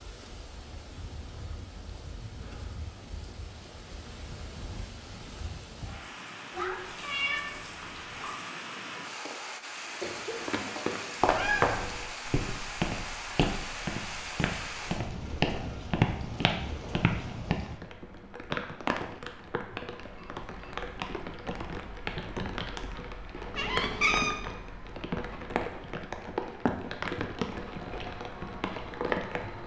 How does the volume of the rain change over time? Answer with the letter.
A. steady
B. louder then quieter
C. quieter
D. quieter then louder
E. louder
E.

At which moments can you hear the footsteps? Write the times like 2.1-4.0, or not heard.
10.1-17.6.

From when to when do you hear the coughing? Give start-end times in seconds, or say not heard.
9.2-10.9.